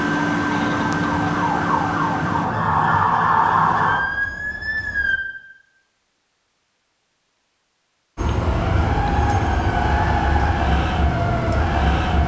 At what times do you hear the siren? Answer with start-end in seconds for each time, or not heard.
0.0-5.2, 8.2-12.2.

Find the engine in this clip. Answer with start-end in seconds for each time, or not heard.
0.0-2.5.